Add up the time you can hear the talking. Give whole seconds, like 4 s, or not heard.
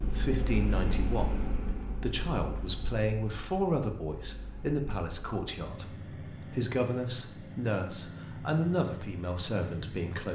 10 s.